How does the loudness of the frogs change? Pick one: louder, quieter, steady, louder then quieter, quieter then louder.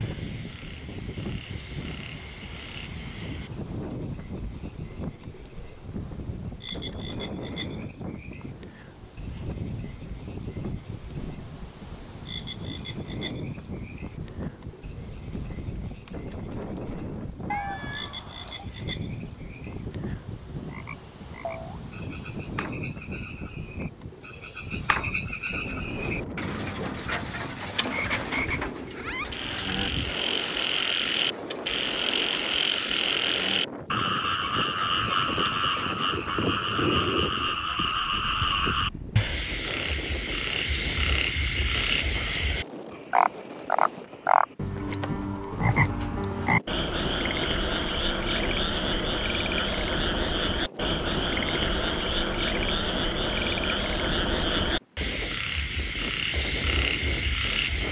louder.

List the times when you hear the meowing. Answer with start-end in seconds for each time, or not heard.
17.4-18.6.